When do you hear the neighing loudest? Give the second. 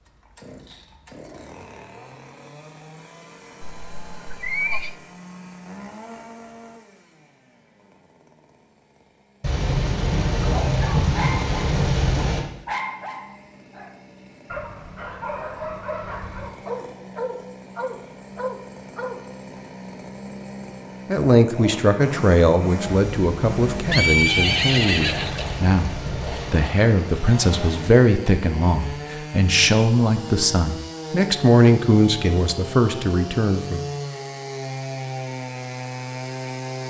24 s.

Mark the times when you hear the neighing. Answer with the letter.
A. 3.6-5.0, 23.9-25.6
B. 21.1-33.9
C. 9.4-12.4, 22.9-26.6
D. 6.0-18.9
A.